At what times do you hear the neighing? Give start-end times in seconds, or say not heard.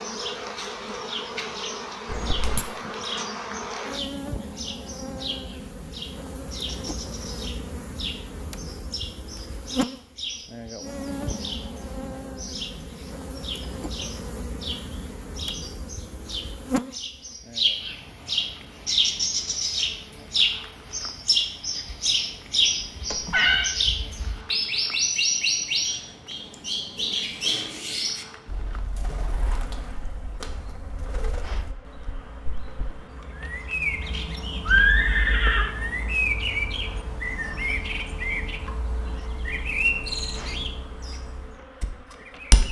2.0-2.6, 23.1-23.7, 34.6-35.7.